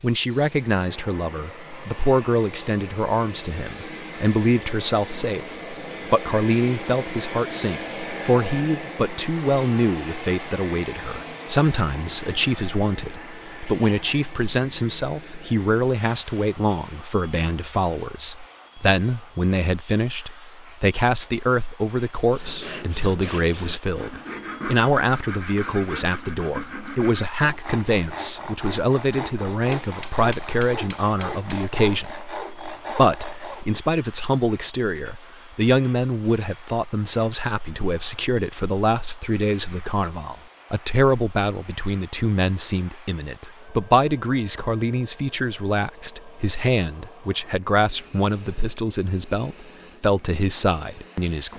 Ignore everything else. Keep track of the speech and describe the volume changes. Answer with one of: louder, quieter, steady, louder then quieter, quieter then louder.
steady.